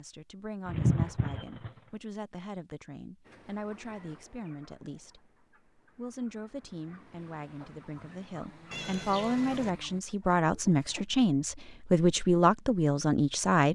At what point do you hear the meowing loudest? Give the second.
1 s.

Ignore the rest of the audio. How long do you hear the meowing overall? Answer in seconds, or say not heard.
2 s.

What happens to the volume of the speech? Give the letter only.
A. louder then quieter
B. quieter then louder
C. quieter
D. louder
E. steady
D.